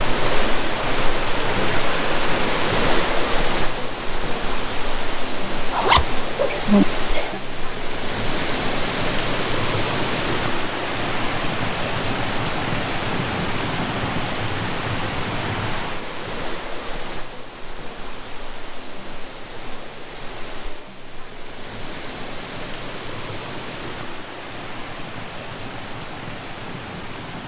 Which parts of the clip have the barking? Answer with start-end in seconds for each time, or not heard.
not heard.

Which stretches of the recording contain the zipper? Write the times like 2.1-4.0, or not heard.
5.7-6.8.